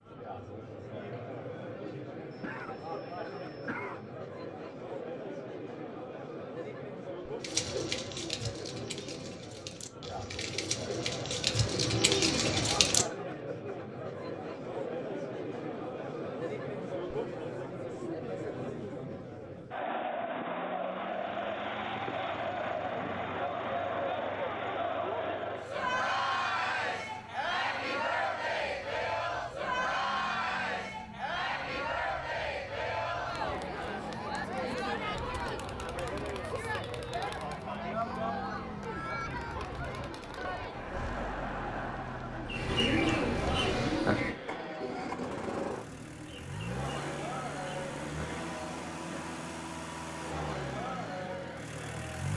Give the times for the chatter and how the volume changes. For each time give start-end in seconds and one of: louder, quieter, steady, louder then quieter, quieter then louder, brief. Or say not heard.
0.0-52.3 louder then quieter.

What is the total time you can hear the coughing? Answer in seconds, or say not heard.
2 s.